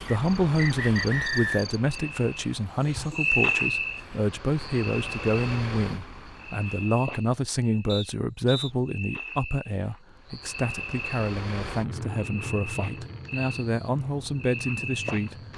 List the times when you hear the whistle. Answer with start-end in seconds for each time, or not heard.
0.1-1.6, 7.8-8.7.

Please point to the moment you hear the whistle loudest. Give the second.
1 s.